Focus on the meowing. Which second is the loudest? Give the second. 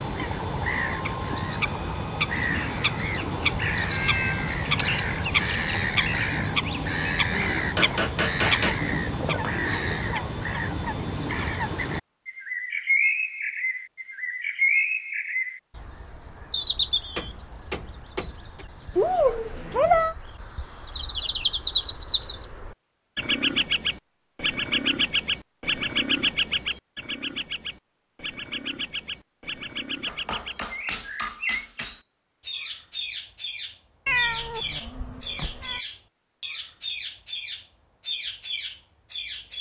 20 s.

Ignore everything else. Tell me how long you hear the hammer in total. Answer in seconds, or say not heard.
5 s.